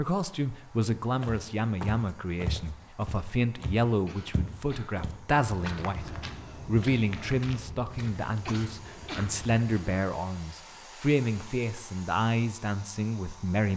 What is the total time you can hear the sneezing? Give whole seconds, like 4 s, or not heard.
2 s.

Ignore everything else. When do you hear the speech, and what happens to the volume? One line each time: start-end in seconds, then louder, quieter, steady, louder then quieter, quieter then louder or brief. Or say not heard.
0.0-13.7 steady.